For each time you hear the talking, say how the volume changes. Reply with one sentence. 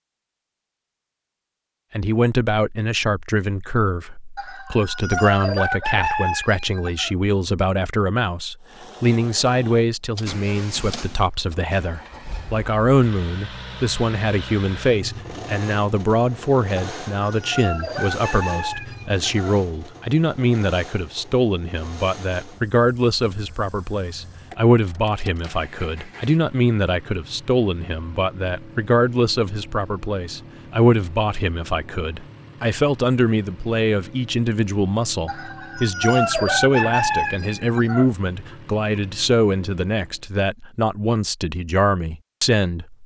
The talking can be heard from 1.9 to 43.0 s, at a steady volume.